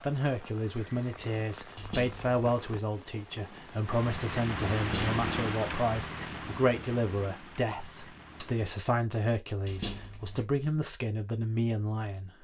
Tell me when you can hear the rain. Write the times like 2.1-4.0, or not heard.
0.0-8.8.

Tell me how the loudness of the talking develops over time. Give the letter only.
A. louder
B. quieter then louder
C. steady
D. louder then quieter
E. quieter
C.